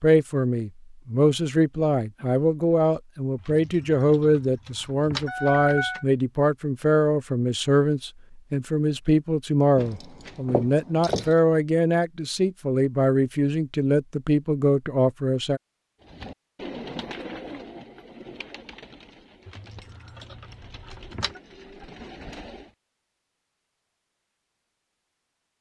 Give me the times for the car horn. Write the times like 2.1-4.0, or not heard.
not heard.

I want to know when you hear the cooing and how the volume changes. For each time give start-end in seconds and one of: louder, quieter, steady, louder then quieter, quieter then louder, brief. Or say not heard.
16.0-22.7 quieter then louder.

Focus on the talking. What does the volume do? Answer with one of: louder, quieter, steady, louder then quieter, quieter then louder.
steady.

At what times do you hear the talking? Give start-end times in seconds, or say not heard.
0.0-15.6.